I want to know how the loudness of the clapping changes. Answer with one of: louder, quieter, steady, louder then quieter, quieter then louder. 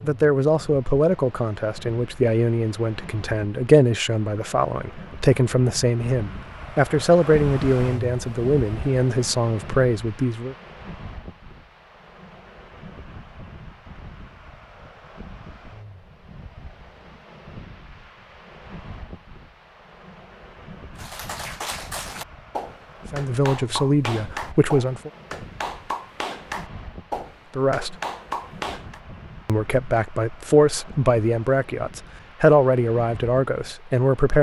steady.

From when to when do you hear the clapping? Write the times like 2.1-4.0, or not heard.
20.9-29.0.